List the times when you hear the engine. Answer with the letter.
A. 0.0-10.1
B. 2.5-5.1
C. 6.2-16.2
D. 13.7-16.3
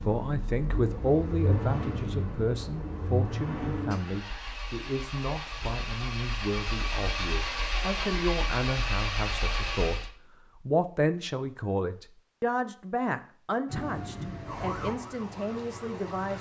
A.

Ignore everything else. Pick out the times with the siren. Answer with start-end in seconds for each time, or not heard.
13.7-16.3.